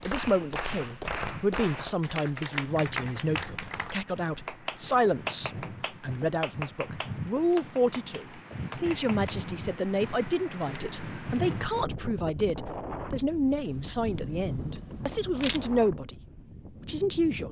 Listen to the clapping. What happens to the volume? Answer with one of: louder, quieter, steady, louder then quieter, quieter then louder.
quieter.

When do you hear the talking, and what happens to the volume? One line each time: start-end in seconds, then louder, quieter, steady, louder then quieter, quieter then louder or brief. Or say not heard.
0.0-16.1 steady
16.9-17.4 brief.